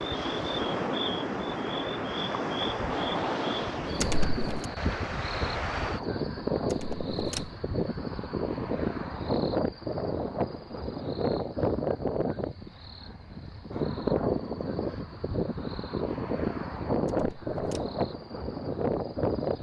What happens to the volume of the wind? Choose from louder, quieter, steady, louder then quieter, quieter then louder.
steady.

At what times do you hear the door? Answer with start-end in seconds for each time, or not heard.
4.0-4.7, 6.7-7.5, 17.1-17.9.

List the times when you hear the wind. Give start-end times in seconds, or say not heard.
0.0-19.5.